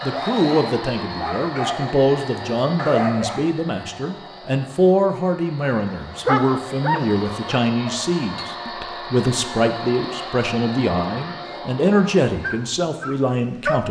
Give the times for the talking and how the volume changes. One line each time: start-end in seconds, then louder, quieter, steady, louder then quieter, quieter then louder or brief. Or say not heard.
0.0-13.8 steady.